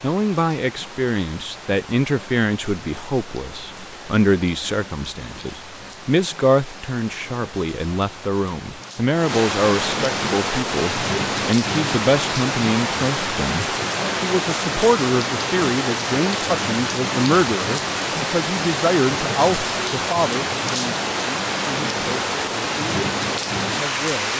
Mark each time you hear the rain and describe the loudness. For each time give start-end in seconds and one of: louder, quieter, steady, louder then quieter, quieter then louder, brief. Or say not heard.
0.0-24.3 louder.